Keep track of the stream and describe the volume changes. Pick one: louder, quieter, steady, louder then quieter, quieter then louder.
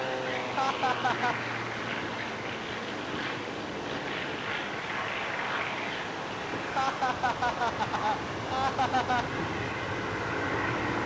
steady.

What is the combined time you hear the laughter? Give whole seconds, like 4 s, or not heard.
3 s.